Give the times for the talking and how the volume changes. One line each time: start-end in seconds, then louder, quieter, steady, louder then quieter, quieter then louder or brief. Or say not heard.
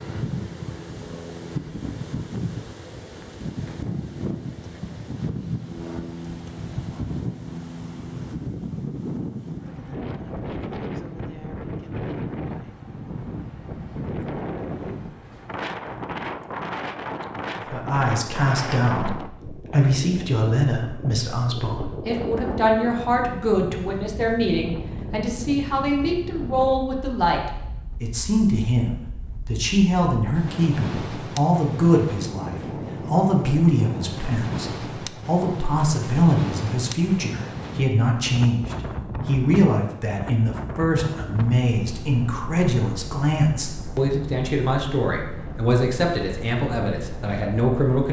17.6-48.0 steady.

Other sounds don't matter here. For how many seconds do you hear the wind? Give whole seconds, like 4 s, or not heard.
48 s.